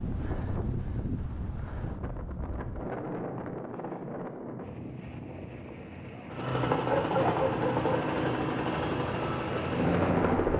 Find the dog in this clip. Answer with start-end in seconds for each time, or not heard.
6.7-8.1.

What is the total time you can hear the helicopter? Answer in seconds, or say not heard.
4 s.